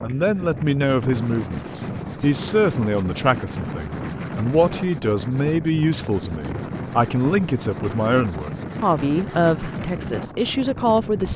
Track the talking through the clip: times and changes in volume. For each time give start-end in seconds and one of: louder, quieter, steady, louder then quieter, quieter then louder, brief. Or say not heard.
0.0-11.3 steady.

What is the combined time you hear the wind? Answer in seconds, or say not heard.
11 s.